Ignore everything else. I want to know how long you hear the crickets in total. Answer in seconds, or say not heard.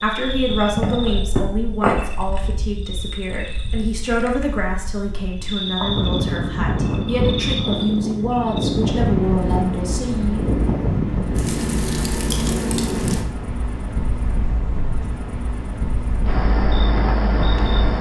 18 s.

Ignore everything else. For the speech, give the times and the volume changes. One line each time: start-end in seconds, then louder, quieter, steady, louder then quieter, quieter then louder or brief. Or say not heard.
0.0-10.4 steady.